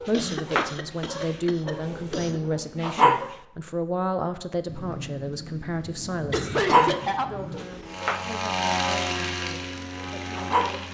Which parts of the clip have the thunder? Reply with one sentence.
The thunder can be heard from 4.7 to 7.7 s.